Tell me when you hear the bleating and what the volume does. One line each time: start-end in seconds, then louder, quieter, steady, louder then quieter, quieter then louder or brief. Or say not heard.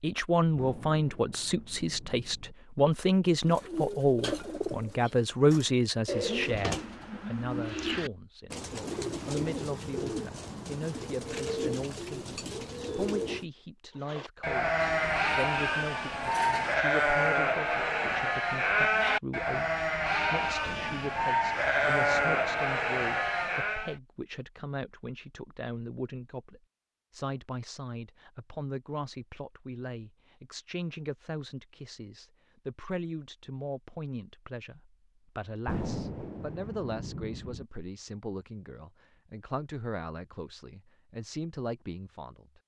14.1-23.9 steady.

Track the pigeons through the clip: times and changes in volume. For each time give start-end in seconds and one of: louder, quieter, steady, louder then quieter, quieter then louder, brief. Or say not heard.
3.4-13.4 steady.